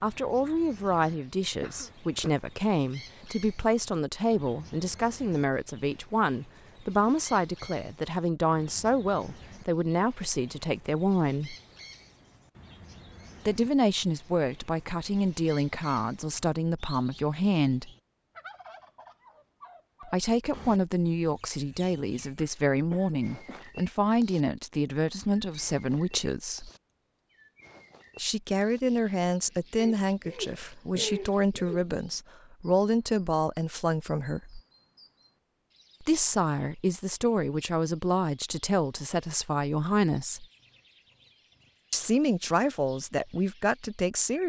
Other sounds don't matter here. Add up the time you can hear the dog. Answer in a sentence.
You can't hear the dog here.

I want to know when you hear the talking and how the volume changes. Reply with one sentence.
The talking can be heard from 0.0 to 11.6 s, at a steady volume; from 13.4 to 17.9 s, at a steady volume; from 20.1 to 26.7 s, at a steady volume; from 28.1 to 34.6 s, at a steady volume; from 36.0 to 40.5 s, at a steady volume; and briefly from 41.9 to 44.4 s.